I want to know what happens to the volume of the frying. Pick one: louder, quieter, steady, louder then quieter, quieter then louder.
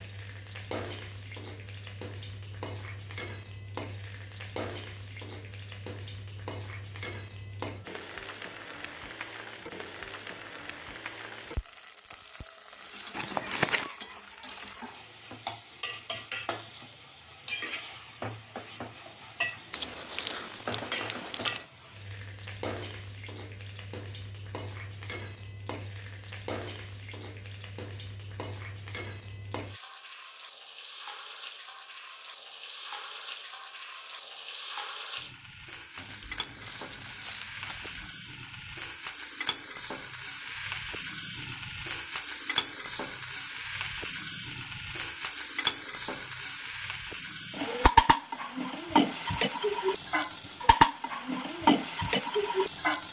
louder.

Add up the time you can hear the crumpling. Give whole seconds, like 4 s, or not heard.
5 s.